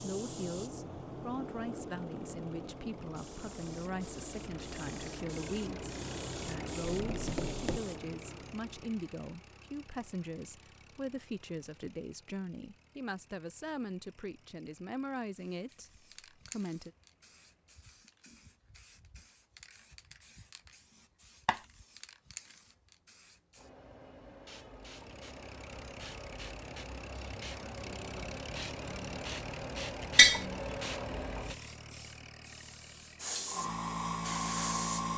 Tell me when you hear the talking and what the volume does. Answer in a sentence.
You can hear the talking from 0.0 to 16.9 s, at a steady volume.